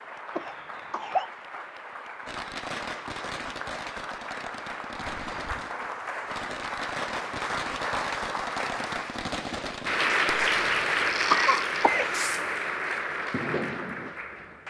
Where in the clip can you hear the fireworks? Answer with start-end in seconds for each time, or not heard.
2.2-14.2.